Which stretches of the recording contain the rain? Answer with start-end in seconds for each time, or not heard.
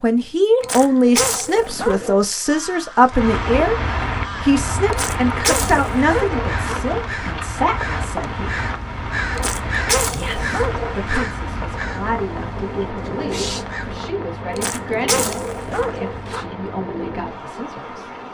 3.1-18.2.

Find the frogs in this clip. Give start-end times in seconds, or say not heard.
not heard.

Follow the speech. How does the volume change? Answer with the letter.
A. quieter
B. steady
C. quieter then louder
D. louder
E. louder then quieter
A.